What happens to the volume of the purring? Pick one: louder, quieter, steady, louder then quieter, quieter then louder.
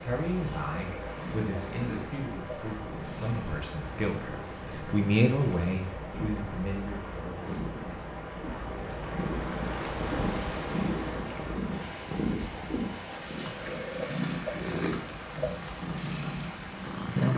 louder.